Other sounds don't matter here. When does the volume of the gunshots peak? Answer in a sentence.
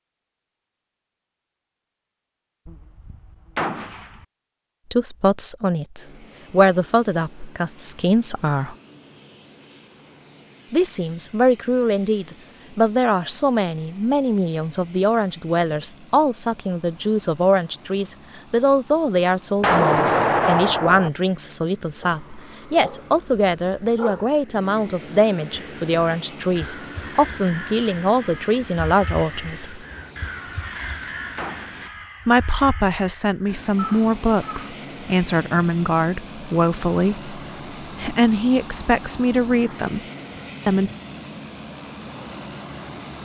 The loudest moment of the gunshots is at 20 seconds.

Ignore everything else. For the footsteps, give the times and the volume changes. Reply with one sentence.
You can't hear the footsteps here.